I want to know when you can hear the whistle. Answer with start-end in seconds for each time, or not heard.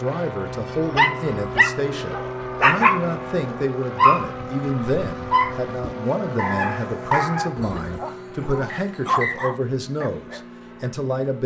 8.7-9.5.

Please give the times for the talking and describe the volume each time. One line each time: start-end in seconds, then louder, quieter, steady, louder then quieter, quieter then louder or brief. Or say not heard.
0.0-11.4 steady.